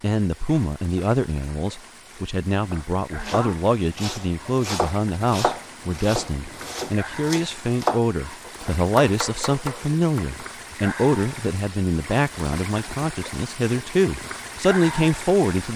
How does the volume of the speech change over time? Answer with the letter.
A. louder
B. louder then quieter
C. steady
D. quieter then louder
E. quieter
C.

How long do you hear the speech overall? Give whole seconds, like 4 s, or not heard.
16 s.